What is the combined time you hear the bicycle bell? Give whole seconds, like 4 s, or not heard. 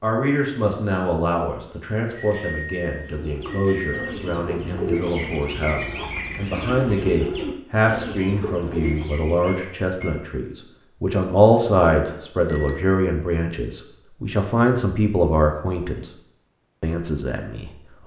4 s.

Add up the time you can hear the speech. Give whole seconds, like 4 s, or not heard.
17 s.